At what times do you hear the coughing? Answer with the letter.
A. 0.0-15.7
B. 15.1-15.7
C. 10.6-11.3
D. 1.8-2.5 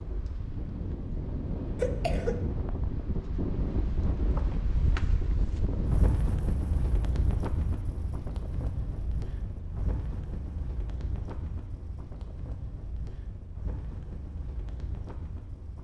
D.